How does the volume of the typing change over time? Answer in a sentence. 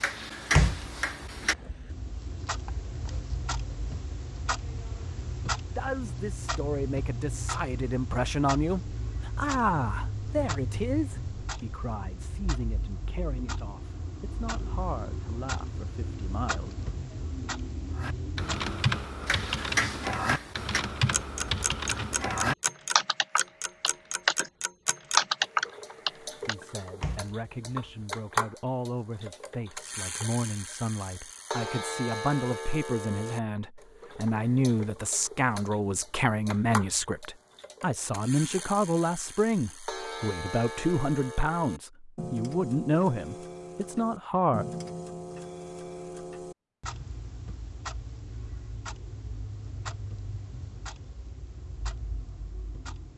The volume of the typing goes up.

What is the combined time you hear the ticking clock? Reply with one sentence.
The ticking clock can be heard for 53 seconds in total.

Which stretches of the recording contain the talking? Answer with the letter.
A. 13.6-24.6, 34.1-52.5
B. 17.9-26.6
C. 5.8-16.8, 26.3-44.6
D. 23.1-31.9
C.